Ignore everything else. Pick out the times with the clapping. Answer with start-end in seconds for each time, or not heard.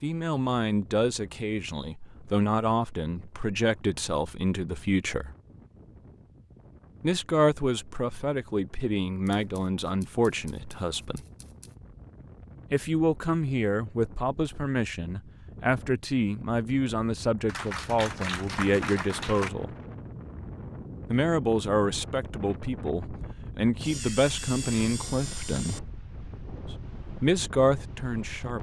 17.4-19.5.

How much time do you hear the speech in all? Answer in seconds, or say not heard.
23 s.